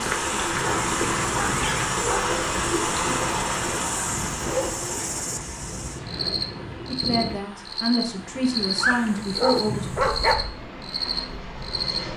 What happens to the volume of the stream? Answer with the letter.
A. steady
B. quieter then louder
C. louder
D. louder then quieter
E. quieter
E.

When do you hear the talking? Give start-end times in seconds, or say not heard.
6.8-9.8.